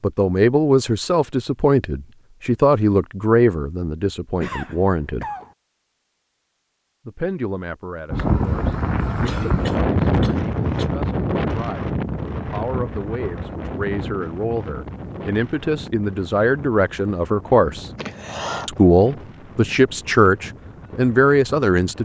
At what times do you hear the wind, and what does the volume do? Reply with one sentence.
You can hear the wind from 8.1 to 21.9 s, getting quieter.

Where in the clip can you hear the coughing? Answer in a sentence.
You can hear the coughing from 4.4 to 5.5 s, from 9.2 to 10.8 s and from 17.9 to 18.8 s.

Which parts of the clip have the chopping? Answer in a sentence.
You can't hear the chopping here.